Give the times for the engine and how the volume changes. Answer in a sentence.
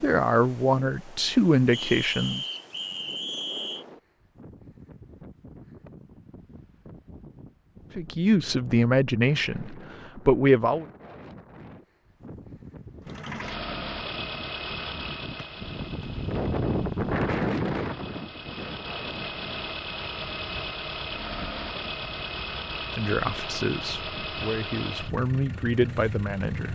You can hear the engine from 13.0 to 26.7 s, getting quieter then louder.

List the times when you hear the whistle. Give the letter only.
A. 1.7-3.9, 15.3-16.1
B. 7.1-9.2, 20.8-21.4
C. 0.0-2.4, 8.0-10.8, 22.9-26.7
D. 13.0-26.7
A.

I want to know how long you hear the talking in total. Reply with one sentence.
The talking can be heard for 9 seconds in total.